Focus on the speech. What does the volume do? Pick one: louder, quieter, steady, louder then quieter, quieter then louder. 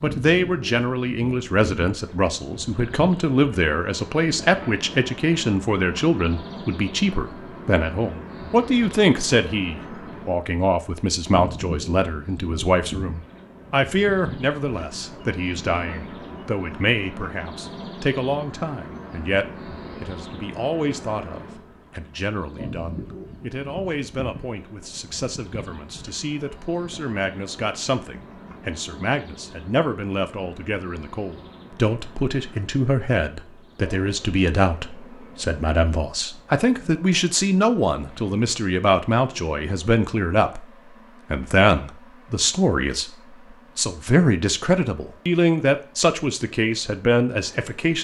quieter then louder.